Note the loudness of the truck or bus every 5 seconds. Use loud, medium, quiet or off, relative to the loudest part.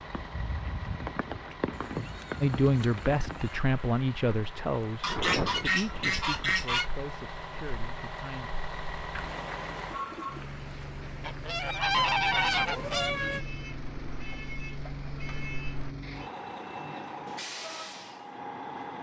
medium, loud, loud, loud.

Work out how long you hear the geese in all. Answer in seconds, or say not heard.
4 s.